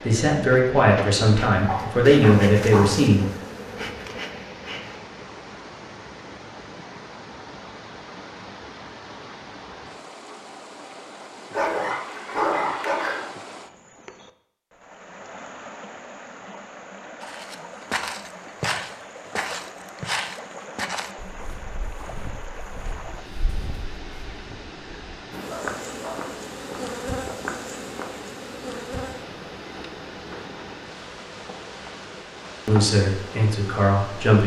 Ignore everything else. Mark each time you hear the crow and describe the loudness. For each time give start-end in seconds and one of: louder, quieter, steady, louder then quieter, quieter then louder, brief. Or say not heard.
not heard.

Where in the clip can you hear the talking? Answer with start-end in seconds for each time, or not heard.
0.0-3.2, 32.6-34.4.